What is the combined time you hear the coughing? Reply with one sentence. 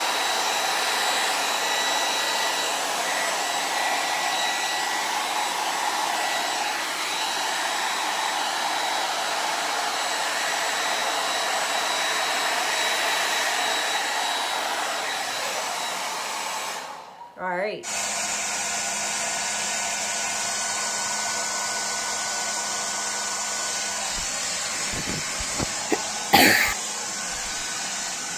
You can hear the coughing for 2 seconds altogether.